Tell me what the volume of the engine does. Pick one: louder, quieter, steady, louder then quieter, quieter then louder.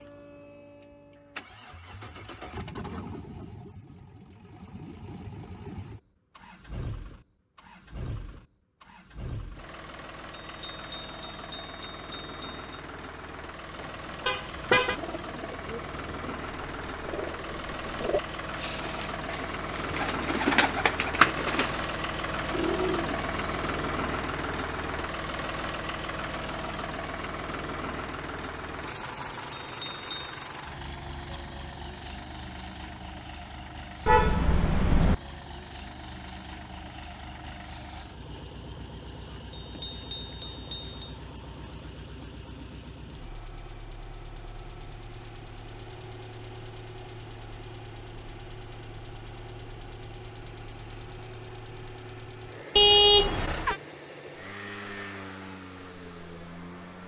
louder then quieter.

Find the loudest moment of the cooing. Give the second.
21 s.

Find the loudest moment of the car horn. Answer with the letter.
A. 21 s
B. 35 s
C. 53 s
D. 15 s
C.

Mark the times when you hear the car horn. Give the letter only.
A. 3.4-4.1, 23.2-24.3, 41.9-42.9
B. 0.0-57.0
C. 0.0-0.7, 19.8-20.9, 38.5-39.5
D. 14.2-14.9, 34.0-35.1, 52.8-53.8
D.